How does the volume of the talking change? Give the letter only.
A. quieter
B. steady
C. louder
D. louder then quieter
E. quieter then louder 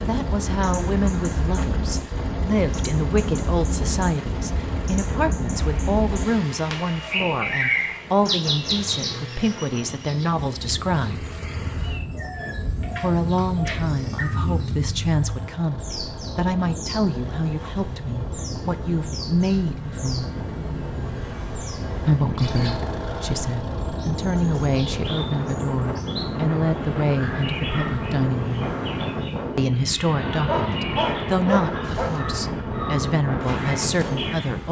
B.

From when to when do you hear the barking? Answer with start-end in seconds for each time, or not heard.
30.3-32.2.